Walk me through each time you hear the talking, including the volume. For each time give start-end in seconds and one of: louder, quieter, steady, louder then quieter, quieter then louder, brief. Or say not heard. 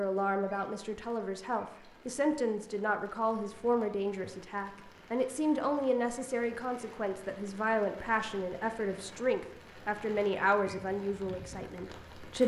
0.0-12.4 steady.